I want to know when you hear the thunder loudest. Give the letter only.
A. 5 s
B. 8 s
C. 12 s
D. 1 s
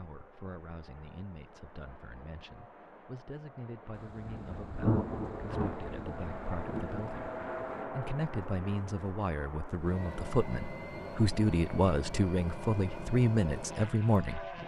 A.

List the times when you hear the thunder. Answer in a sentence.
You can hear the thunder from 4.0 to 7.8 s.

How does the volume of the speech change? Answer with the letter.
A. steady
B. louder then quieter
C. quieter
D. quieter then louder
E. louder
E.